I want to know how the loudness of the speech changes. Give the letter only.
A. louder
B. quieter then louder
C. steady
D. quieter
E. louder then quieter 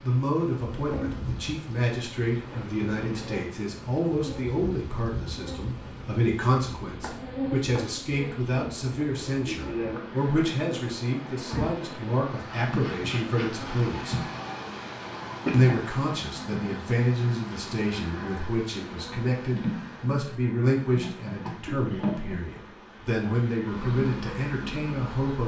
C.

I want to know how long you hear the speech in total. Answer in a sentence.
The speech can be heard for 24 seconds in total.